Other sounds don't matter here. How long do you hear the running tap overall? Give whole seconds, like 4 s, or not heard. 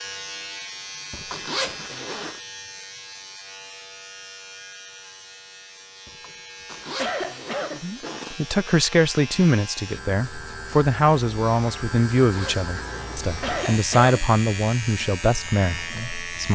not heard.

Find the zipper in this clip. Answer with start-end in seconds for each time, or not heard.
1.3-2.4, 6.7-8.4, 12.2-13.8.